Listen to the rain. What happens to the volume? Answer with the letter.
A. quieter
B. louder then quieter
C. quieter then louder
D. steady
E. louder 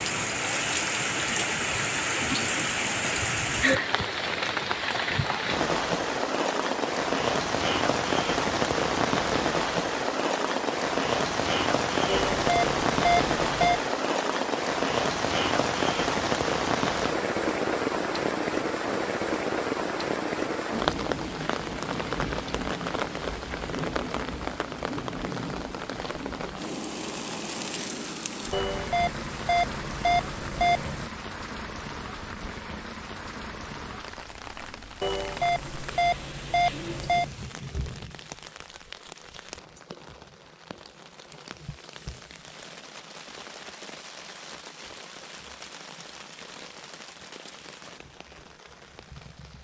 A.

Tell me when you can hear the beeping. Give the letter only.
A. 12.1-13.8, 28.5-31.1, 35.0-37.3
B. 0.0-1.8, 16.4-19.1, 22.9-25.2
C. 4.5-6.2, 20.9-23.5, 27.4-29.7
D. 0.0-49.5
A.